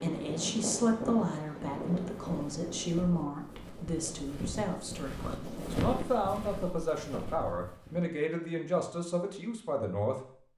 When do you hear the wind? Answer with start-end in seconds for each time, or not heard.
0.0-6.0.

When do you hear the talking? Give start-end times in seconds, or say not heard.
0.0-10.3.